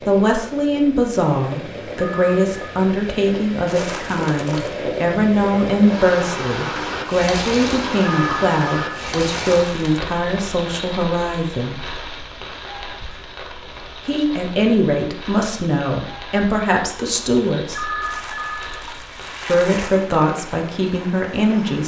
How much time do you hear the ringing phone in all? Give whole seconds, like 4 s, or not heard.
3 s.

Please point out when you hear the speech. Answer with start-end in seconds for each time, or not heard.
0.1-11.8, 14.1-18.0, 19.4-21.8.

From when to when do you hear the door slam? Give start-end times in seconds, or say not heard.
not heard.